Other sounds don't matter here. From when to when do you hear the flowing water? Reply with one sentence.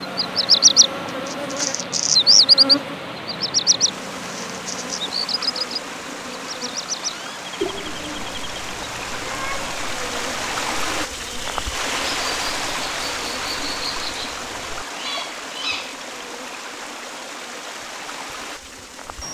The flowing water can be heard from 0.0 to 19.2 s.